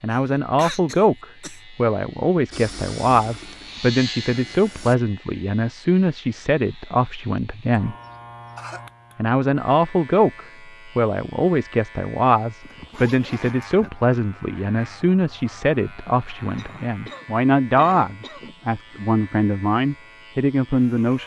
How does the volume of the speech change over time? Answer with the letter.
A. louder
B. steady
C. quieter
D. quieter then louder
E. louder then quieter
B.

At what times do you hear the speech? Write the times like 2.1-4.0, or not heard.
0.0-8.0, 9.2-21.2.